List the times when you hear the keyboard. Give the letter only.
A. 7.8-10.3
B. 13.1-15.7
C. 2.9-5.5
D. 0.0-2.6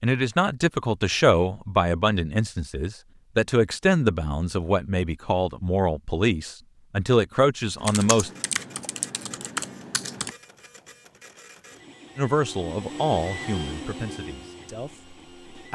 A.